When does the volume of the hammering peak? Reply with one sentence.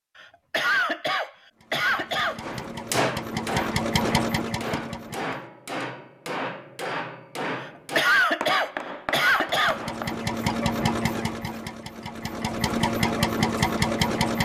The volume of the hammering peaks at 3 seconds.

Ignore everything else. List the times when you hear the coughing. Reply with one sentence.
The coughing can be heard from 0.1 to 2.4 s and from 7.6 to 9.8 s.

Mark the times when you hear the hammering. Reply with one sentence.
The hammering can be heard from 2.4 to 10.2 s.